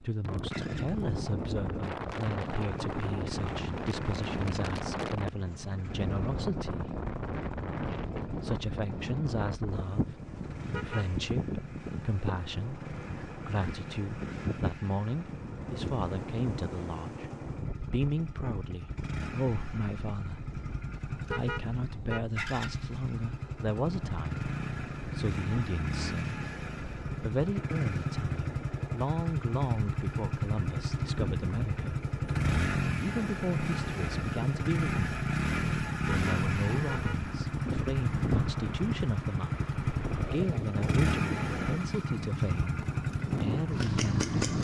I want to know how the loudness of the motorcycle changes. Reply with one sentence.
The volume of the motorcycle goes up.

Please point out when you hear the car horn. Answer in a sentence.
The car horn can be heard from 10.7 to 11.1 s, from 21.3 to 22.2 s and from 36.0 to 37.2 s.